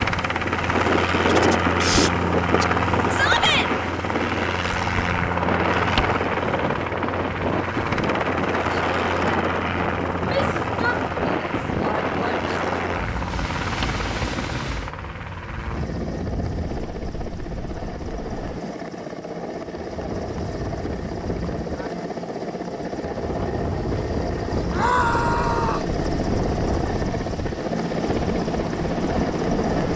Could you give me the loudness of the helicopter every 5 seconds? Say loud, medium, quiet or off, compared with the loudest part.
loud, loud, medium, medium, medium, loud.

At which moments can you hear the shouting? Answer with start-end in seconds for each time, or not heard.
3.1-3.7, 10.2-12.1, 24.7-25.9.